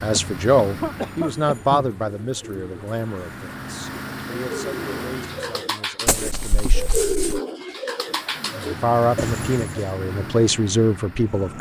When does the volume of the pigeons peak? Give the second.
7 s.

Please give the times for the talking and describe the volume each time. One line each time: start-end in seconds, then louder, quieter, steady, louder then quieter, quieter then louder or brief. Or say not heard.
0.0-7.0 quieter
8.8-11.5 brief.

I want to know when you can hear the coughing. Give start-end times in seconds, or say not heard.
0.1-1.9, 6.0-7.4.